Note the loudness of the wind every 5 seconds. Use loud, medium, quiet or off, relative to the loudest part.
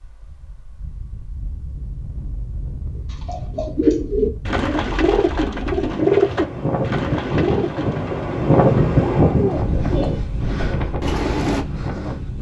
quiet, loud, medium.